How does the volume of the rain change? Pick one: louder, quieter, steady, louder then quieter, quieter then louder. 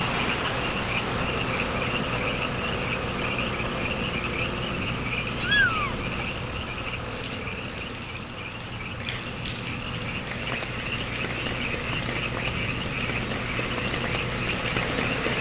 quieter then louder.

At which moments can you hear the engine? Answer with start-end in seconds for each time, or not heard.
0.0-15.3.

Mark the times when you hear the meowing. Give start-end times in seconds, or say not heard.
5.4-6.5.